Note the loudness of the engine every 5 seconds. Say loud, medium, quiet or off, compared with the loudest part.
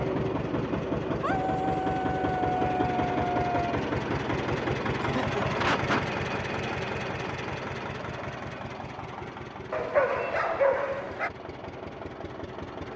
loud, loud, medium.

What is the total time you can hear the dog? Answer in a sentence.
The dog can be heard for 4 seconds in total.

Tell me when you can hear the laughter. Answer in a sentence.
The laughter can be heard from 5.0 to 6.0 s.